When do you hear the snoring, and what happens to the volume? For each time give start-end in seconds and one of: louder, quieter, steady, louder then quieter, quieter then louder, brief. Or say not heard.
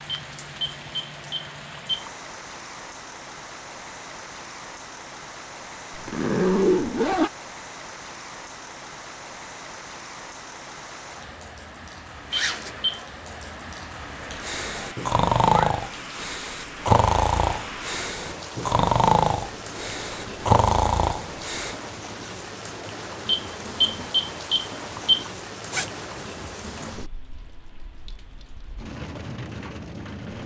14.2-21.8 quieter then louder.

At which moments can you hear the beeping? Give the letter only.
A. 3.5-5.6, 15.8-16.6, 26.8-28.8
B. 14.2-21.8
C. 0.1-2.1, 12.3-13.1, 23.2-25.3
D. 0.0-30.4
C.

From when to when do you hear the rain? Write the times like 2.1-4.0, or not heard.
0.0-30.4.